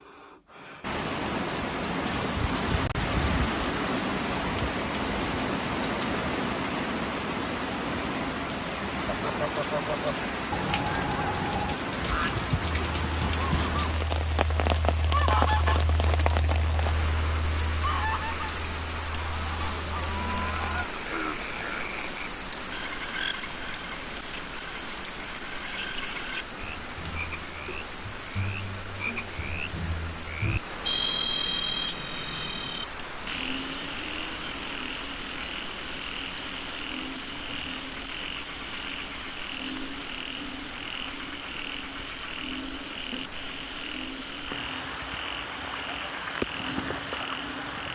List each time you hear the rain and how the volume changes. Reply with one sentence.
You can hear the rain from 0.1 to 47.9 s, getting quieter.